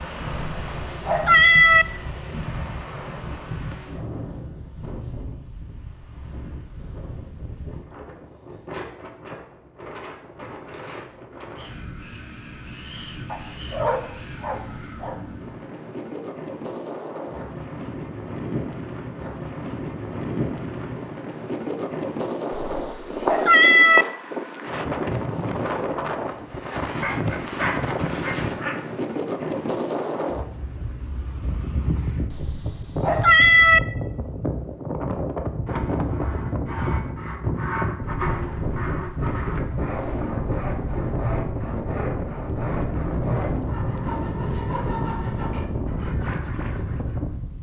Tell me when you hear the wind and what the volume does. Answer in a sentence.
The wind can be heard from 0.0 to 47.5 s, getting louder.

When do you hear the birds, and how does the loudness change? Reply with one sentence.
The birds can't be heard in this clip.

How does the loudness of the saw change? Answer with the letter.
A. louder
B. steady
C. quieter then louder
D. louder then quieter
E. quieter
B.